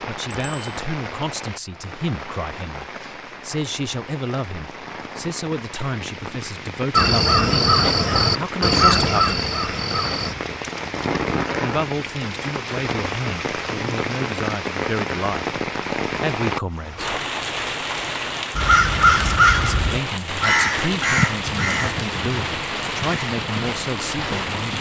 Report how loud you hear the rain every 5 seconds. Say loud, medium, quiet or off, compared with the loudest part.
medium, medium, loud, loud, loud.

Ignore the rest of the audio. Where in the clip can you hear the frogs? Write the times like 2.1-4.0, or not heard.
not heard.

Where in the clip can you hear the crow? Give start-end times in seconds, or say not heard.
6.9-10.3, 18.6-24.7.